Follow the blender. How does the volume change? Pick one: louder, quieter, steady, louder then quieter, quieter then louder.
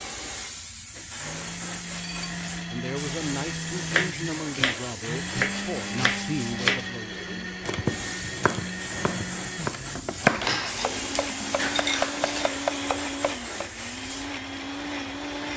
steady.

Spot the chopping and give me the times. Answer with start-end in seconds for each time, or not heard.
3.9-13.7.